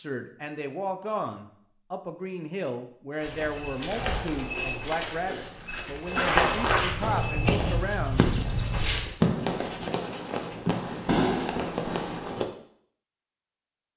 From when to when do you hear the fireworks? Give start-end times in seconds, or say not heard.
7.0-12.4.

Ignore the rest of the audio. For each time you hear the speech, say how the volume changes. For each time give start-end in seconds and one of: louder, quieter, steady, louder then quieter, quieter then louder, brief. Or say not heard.
0.0-8.2 steady.